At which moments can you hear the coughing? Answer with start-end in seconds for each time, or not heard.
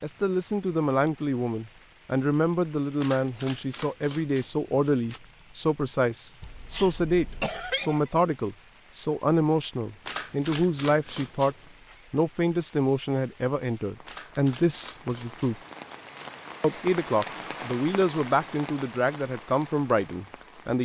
6.4-8.1.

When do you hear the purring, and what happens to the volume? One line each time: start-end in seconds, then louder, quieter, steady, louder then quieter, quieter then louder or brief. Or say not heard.
not heard.